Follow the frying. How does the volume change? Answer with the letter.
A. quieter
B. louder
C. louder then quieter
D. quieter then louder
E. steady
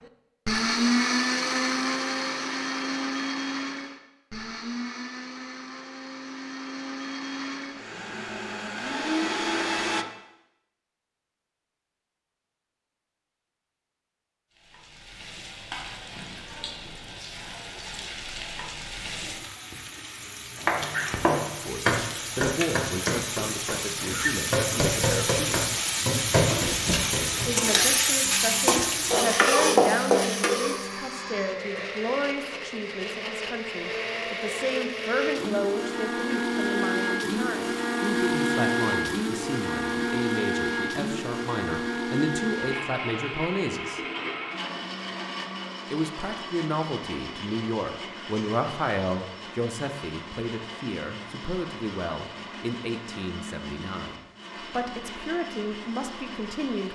B.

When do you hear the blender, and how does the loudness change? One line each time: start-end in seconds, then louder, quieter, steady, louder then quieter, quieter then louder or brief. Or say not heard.
0.0-10.1 quieter then louder
28.2-56.8 louder then quieter.